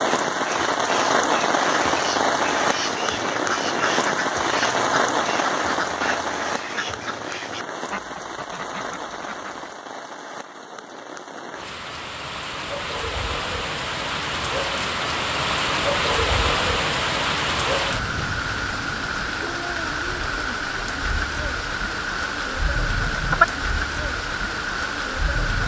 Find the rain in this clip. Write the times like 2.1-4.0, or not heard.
0.0-25.6.